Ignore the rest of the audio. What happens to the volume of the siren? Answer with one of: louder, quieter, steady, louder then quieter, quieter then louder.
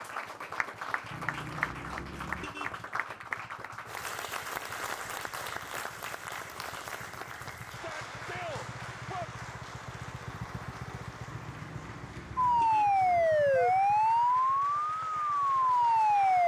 quieter then louder.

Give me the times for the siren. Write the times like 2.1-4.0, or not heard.
12.3-16.4.